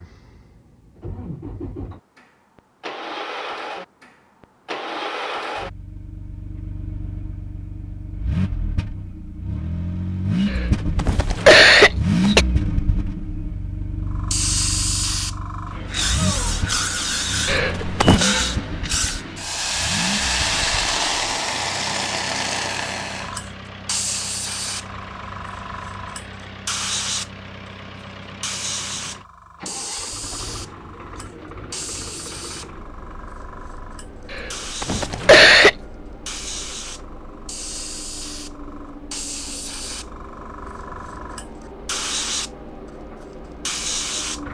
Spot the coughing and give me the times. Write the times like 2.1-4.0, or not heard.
10.4-12.4, 17.4-18.2, 34.3-35.8.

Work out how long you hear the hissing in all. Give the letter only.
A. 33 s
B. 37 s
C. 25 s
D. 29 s
D.